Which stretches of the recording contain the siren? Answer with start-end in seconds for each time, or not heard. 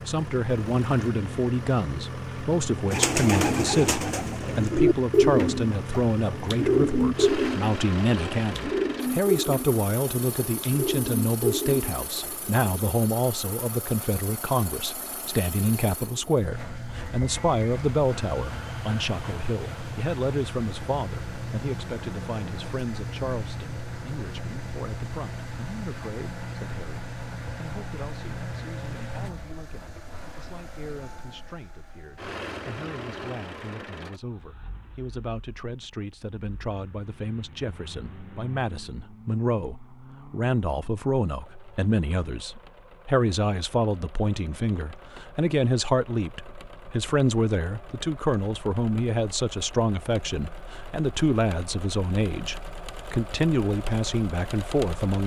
not heard.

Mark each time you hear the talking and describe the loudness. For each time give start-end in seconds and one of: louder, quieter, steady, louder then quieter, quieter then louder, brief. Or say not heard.
0.1-55.2 quieter then louder.